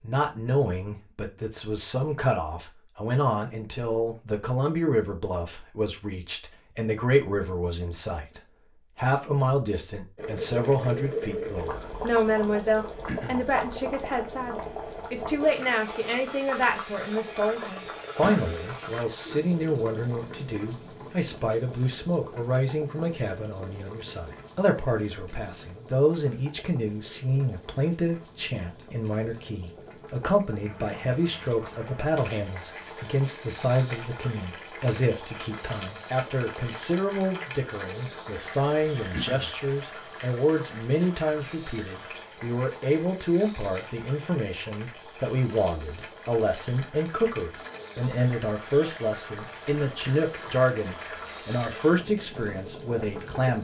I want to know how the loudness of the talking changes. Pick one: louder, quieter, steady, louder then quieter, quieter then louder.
steady.